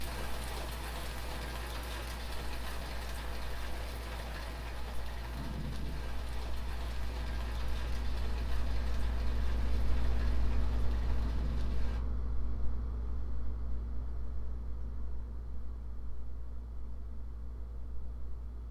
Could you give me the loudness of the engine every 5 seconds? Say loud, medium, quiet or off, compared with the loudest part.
medium, loud, loud, medium.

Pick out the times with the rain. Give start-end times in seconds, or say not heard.
0.0-12.0.